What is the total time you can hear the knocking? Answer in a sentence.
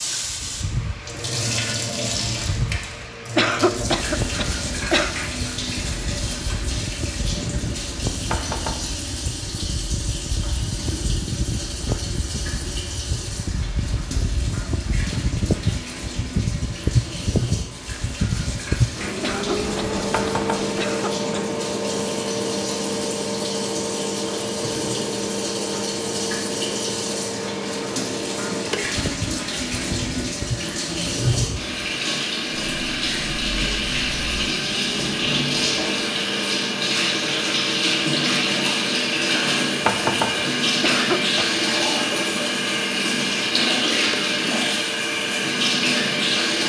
You can hear the knocking for 2 seconds altogether.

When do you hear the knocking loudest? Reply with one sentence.
The volume of the knocking peaks at 40 seconds.